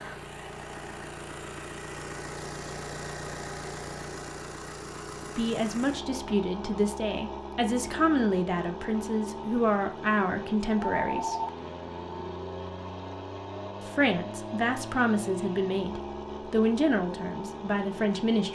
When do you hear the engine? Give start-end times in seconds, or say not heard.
0.0-18.5.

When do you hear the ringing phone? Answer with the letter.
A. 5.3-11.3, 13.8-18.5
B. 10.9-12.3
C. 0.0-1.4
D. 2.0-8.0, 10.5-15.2
B.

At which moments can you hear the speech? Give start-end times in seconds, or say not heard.
5.3-11.3, 13.8-18.5.